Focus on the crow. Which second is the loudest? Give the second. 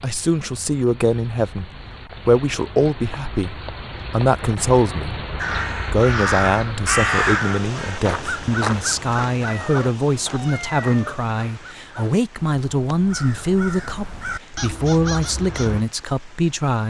7 s.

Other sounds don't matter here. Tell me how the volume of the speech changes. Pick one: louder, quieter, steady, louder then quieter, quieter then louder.
steady.